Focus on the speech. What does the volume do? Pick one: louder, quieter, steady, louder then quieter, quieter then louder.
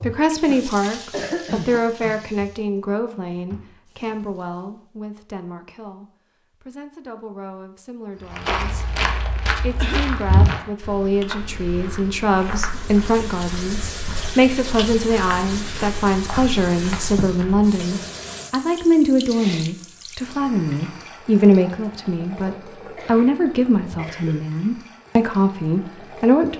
quieter then louder.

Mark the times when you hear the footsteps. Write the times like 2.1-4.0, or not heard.
8.2-17.8.